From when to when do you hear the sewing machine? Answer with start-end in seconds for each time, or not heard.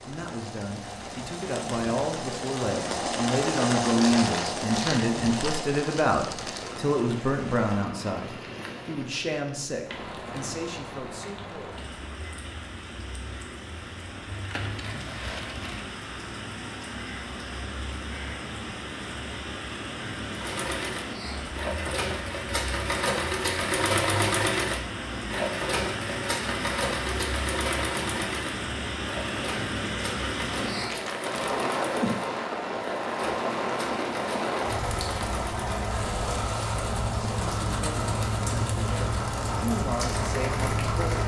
0.0-8.9, 20.3-41.2.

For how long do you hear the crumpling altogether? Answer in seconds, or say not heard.
5 s.